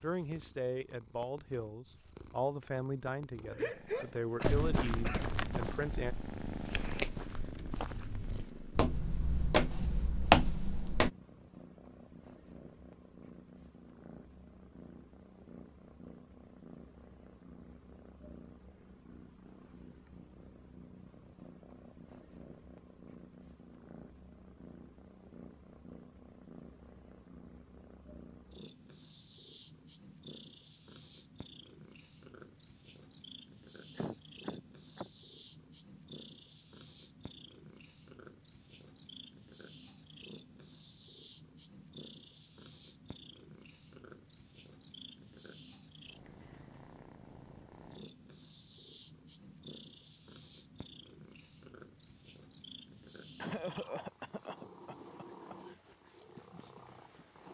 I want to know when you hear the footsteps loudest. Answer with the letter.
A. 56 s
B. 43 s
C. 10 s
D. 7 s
C.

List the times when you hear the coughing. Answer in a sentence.
You can hear the coughing from 3.5 to 5.3 s, from 34.0 to 35.1 s and from 53.4 to 55.8 s.